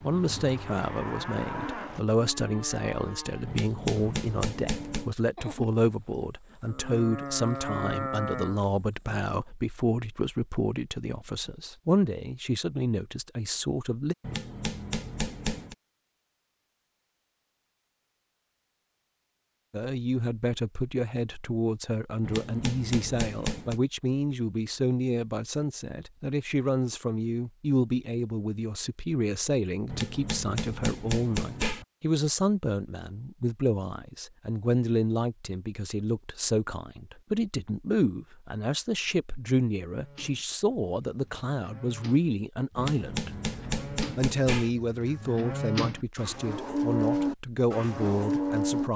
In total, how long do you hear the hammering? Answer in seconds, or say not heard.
9 s.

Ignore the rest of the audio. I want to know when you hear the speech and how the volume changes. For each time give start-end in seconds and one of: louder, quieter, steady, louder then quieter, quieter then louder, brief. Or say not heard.
0.0-14.2 steady
19.7-43.3 steady
44.1-48.9 quieter then louder.